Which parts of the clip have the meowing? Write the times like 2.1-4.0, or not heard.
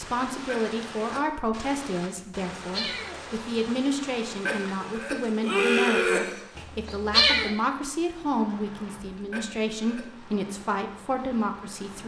2.1-3.5, 6.5-7.5.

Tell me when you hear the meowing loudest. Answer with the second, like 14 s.
7 s.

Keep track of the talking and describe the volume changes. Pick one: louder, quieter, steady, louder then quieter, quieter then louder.
steady.